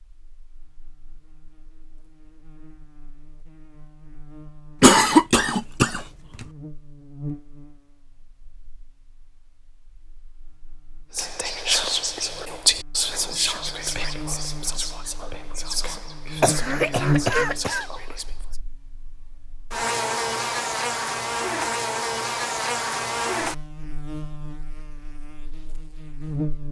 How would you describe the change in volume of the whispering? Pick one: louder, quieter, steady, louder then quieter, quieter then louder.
quieter.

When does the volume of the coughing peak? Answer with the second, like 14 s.
5 s.